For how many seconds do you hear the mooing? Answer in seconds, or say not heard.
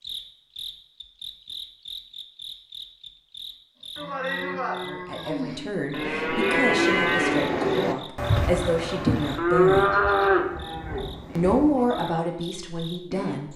8 s.